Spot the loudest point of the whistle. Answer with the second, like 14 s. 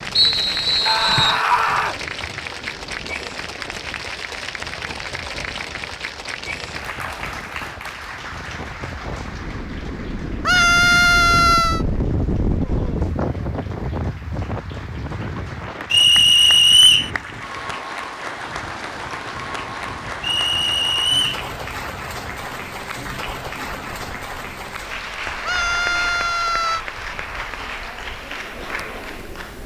17 s.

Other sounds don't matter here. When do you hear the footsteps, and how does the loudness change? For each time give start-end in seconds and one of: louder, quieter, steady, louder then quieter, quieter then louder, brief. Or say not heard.
not heard.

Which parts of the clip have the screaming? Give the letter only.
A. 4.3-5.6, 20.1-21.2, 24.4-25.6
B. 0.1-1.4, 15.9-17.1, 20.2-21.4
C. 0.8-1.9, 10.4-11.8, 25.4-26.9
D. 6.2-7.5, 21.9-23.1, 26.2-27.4
C.